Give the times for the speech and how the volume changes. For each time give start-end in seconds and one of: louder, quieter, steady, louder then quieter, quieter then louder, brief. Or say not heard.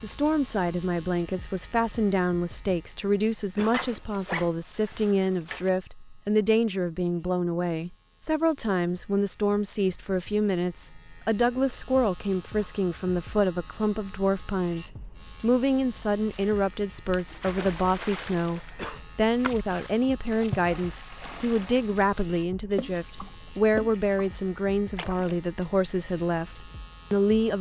0.0-27.5 steady.